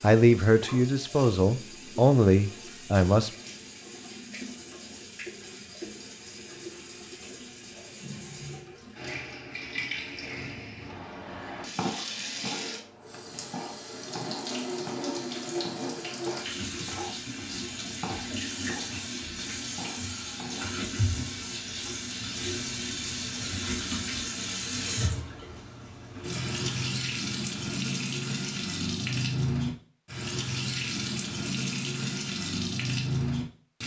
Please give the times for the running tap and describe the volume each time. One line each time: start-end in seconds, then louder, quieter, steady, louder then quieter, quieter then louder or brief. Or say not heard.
0.0-33.8 louder.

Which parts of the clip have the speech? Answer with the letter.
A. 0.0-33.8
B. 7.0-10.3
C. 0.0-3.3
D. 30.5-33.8
C.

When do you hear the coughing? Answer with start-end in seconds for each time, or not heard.
not heard.